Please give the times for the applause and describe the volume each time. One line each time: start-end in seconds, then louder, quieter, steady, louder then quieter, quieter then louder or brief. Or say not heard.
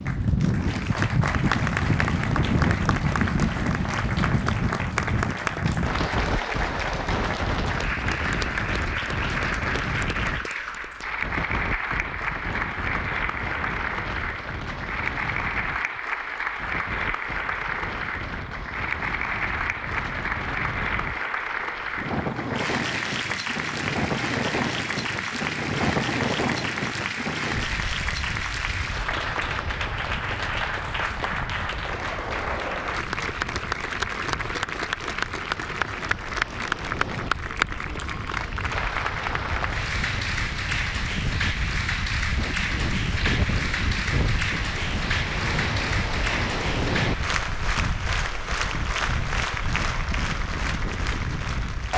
0.0-51.9 steady.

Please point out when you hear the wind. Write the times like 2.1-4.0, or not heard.
0.0-51.9.